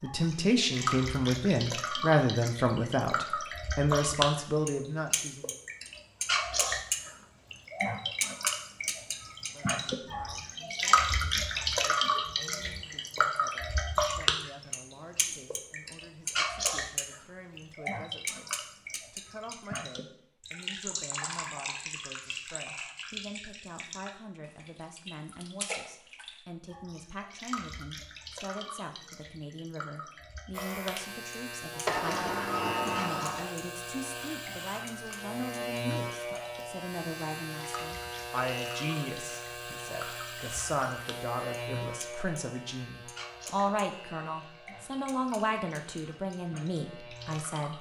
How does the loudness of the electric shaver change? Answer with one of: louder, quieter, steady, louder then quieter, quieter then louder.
quieter.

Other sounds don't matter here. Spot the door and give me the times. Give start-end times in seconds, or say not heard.
31.9-33.5.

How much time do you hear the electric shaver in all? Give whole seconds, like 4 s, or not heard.
17 s.